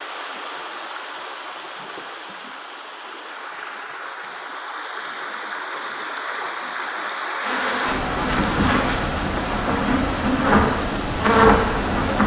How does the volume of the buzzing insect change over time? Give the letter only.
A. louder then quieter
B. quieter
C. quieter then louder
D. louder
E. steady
D.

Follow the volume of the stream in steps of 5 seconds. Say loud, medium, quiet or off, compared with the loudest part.
medium, loud, loud.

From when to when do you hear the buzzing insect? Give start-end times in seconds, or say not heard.
7.4-12.2.